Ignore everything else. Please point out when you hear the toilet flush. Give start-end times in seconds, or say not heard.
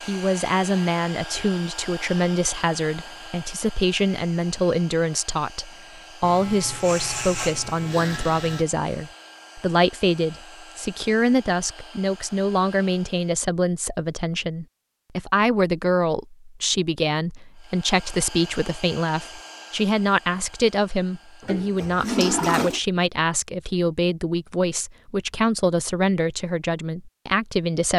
21.4-22.8.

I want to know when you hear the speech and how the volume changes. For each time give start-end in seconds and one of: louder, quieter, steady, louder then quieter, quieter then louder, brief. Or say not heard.
0.0-27.9 steady.